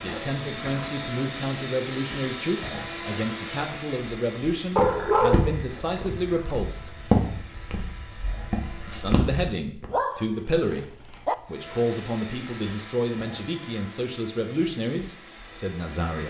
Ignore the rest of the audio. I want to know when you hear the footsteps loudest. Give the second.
7 s.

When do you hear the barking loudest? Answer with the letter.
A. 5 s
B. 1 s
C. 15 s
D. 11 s
A.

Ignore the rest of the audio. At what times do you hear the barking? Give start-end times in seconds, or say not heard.
4.8-6.5, 9.9-11.3.